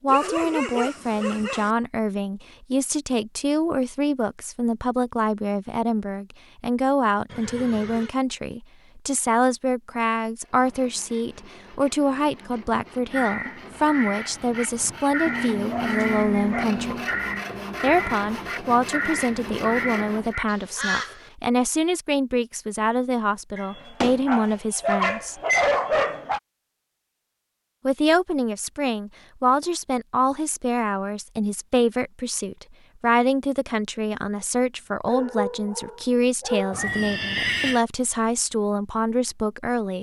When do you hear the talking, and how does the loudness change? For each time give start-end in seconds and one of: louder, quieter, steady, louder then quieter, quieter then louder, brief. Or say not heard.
0.0-17.1 steady
17.8-25.4 steady
27.9-39.9 steady.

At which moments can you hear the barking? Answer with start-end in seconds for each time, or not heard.
0.1-1.7, 15.2-17.1, 23.6-26.4, 35.0-36.8.